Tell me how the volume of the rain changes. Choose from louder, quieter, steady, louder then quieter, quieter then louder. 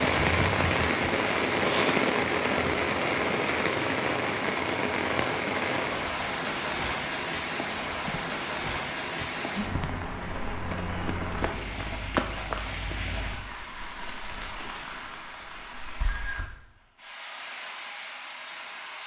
quieter.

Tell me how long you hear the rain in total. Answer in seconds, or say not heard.
19 s.